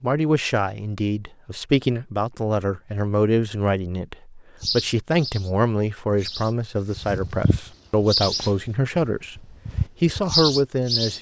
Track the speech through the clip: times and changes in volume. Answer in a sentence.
You can hear the speech from 0.0 to 11.1 s, at a steady volume.